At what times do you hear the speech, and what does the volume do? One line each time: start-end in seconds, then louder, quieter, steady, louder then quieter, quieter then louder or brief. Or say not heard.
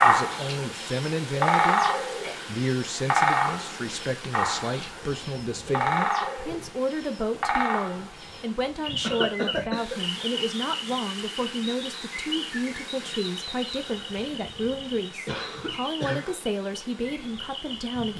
0.0-1.8 brief
2.5-18.1 steady.